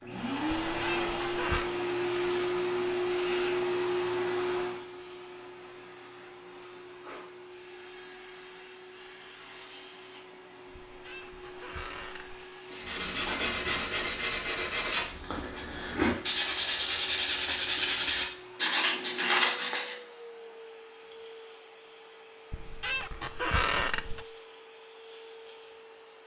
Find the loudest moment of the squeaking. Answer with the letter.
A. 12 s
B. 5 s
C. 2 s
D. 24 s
D.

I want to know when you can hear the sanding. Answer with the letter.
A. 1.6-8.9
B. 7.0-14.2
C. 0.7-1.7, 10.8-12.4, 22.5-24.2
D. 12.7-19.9
D.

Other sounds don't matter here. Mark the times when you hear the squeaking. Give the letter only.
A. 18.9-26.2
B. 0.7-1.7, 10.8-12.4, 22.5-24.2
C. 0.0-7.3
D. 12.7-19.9
B.